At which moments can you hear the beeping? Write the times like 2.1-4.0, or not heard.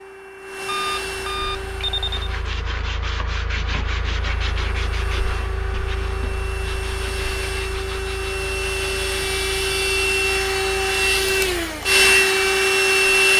0.7-2.4.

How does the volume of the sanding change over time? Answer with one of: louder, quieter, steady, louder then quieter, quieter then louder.
quieter.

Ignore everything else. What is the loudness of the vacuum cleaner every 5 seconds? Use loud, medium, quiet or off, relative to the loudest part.
quiet, medium, loud.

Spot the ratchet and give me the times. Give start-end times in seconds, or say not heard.
not heard.